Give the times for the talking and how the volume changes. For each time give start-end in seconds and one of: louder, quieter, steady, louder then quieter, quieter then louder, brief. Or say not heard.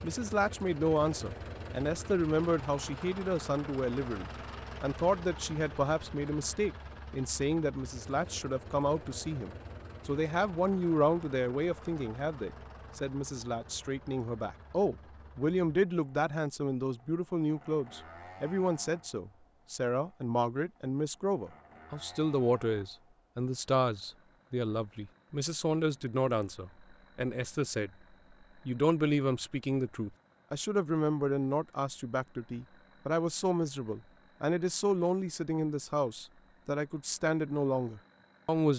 0.0-27.9 steady
28.6-38.7 steady.